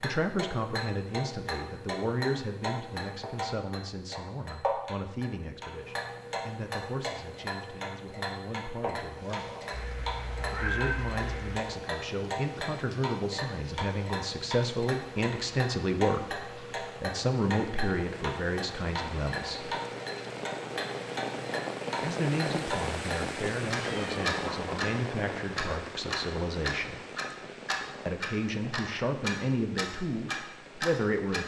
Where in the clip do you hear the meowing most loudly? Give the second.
11 s.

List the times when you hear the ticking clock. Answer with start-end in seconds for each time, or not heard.
0.0-31.4.